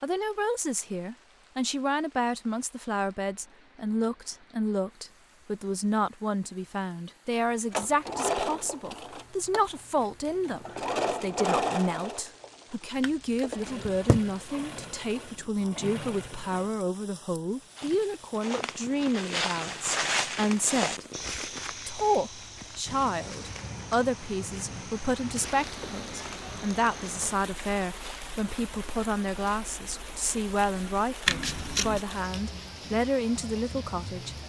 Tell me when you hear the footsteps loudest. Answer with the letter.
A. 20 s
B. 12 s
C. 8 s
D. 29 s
A.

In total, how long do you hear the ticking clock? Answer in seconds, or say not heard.
not heard.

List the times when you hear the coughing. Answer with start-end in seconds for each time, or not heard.
not heard.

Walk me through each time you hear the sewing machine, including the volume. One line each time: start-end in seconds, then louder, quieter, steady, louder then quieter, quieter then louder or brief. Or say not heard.
7.7-16.7 quieter.